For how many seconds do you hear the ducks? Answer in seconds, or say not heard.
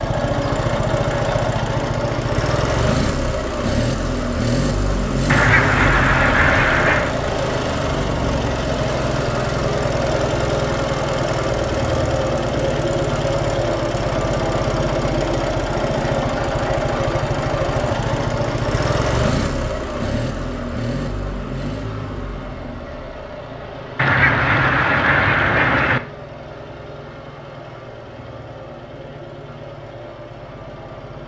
4 s.